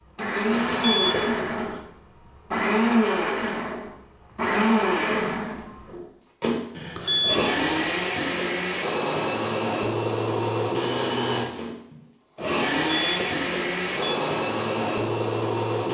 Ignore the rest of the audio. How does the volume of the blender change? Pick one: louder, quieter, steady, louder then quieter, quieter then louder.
steady.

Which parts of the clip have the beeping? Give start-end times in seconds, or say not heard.
0.5-1.8, 6.8-8.0, 12.8-14.2.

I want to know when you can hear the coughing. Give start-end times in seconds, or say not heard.
not heard.